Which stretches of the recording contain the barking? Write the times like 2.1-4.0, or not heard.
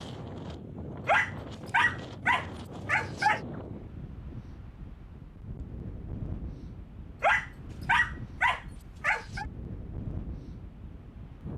1.1-3.4, 7.2-9.4.